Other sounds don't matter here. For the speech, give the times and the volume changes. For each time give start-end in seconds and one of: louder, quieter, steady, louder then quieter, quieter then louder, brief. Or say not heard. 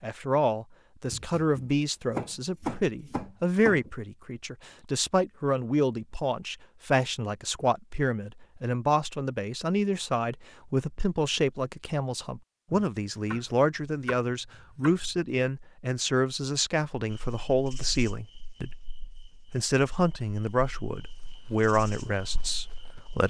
0.0-23.2 steady.